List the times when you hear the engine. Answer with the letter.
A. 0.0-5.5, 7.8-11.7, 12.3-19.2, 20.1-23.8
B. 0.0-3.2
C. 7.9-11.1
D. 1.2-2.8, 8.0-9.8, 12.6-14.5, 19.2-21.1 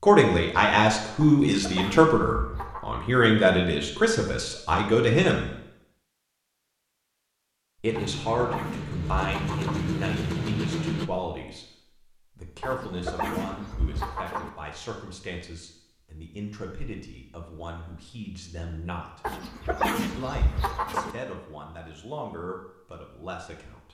C.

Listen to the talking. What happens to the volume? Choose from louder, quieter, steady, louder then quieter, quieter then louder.
quieter.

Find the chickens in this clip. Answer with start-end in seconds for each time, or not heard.
1.2-2.8, 8.0-9.8, 12.6-14.5, 19.2-21.1.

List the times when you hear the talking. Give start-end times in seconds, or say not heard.
0.0-5.5, 7.8-11.7, 12.3-19.2, 20.1-23.8.